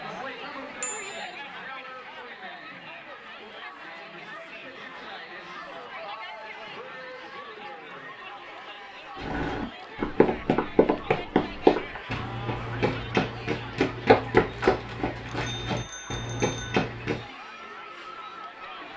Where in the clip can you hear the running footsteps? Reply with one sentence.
The running footsteps can be heard from 9.2 to 17.2 s.